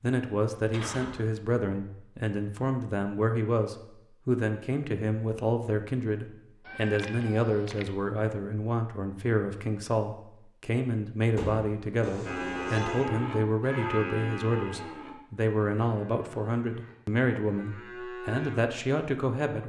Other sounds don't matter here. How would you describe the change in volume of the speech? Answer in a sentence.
The volume of the speech stays about the same.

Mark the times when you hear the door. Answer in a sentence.
You can hear the door from 0.6 to 1.3 s and from 11.3 to 11.8 s.